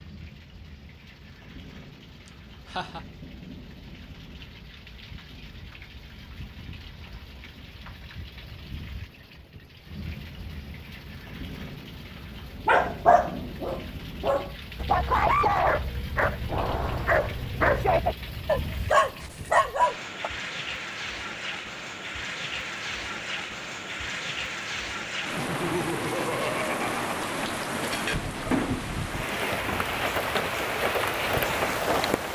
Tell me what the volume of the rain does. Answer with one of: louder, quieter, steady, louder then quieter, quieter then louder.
louder.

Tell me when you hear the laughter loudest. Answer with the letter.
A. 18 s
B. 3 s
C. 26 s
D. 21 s
C.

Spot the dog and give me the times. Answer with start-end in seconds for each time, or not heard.
12.7-20.3.